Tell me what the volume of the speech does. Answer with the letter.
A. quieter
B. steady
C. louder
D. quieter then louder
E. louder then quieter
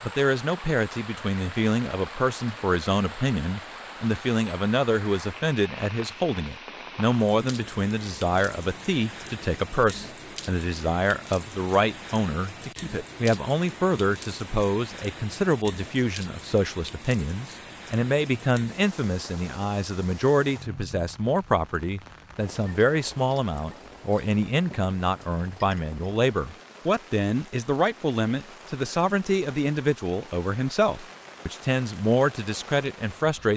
B.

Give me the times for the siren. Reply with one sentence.
You can't hear the siren here.